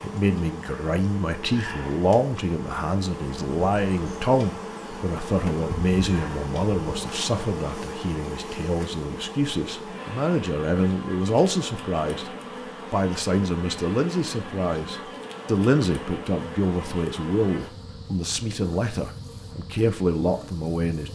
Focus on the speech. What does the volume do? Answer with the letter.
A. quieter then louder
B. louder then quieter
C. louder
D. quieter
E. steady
E.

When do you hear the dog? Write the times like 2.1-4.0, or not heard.
not heard.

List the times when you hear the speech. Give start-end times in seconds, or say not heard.
0.0-12.3, 12.9-21.1.